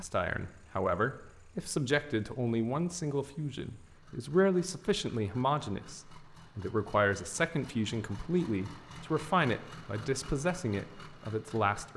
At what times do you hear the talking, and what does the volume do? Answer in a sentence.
The talking can be heard from 0.0 to 11.9 s, at a steady volume.